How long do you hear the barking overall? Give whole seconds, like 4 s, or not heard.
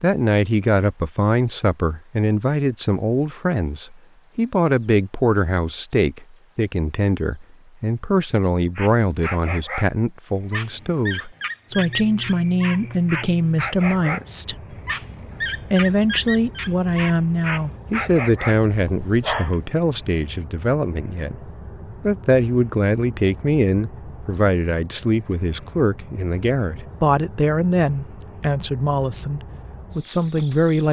11 s.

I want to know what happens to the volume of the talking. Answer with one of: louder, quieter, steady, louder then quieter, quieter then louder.
steady.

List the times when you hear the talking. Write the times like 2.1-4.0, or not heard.
0.0-14.6, 15.7-30.8.